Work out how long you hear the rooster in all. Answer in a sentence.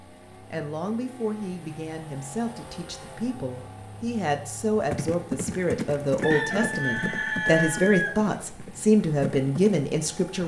The rooster can be heard for 2 seconds in total.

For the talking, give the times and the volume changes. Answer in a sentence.
The talking can be heard from 0.5 to 10.4 s, getting louder.